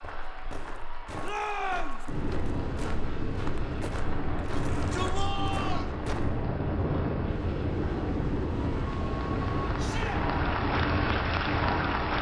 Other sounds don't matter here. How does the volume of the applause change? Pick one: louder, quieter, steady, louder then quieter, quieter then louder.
louder.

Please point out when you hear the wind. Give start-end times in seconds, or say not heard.
2.0-12.1.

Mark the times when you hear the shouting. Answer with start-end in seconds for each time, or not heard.
1.2-2.0, 4.5-5.9, 9.8-10.2.